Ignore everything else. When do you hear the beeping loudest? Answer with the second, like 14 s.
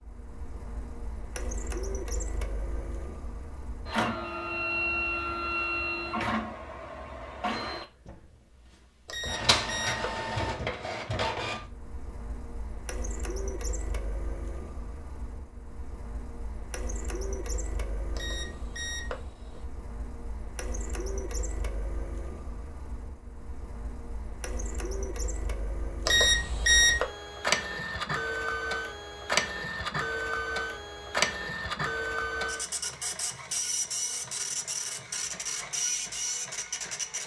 27 s.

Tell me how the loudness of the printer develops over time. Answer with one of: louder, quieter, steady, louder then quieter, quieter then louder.
quieter then louder.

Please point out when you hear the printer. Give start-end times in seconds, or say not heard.
0.0-37.2.